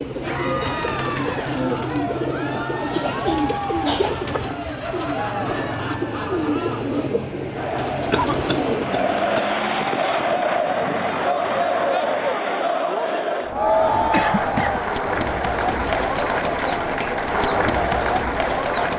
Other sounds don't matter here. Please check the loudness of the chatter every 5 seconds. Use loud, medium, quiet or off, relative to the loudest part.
medium, medium, loud, loud.